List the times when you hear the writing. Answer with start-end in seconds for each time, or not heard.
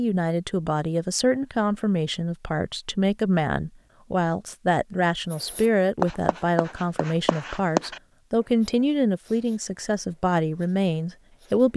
5.3-8.0, 8.6-11.7.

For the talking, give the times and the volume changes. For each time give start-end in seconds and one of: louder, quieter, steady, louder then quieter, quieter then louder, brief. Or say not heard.
0.0-11.7 steady.